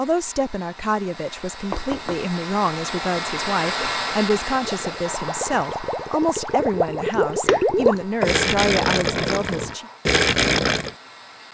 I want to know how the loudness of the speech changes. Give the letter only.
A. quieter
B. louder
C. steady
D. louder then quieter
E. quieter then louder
C.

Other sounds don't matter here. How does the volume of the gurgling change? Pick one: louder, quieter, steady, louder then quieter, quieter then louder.
louder.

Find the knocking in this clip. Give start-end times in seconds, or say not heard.
1.7-2.3, 7.5-8.3.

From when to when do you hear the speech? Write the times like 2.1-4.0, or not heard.
0.0-9.8.